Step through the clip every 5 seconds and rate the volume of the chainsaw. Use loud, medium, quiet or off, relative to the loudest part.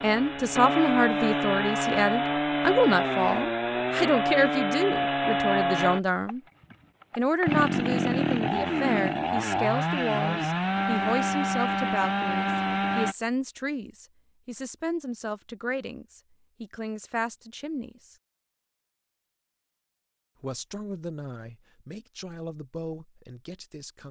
loud, loud, loud, off, off.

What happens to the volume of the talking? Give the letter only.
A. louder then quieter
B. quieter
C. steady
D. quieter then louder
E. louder
B.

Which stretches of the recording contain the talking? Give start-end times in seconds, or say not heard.
0.0-6.4, 7.2-18.1, 20.4-24.0.